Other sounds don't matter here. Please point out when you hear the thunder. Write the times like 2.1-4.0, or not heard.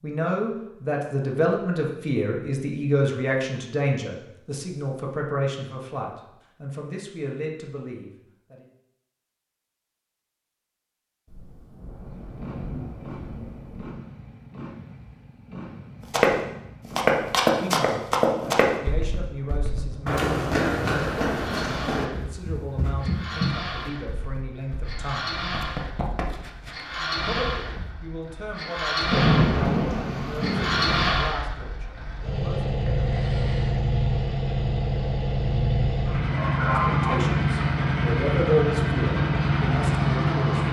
11.2-13.9, 29.1-31.1.